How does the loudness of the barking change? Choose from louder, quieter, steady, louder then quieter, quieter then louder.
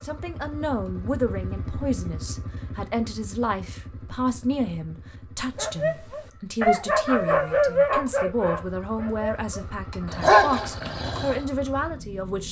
quieter then louder.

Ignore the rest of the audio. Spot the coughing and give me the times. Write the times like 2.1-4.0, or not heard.
not heard.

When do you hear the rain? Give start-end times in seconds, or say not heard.
not heard.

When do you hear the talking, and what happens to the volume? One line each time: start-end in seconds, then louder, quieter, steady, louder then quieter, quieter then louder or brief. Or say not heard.
0.0-12.4 steady.